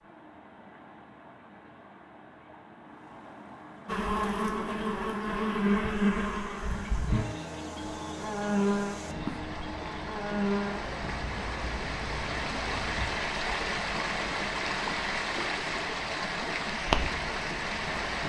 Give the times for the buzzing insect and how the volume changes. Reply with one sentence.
You can hear the buzzing insect from 3.9 to 13.1 s, getting quieter.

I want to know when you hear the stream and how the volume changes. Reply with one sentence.
You can hear the stream from 0.0 to 18.2 s, getting louder.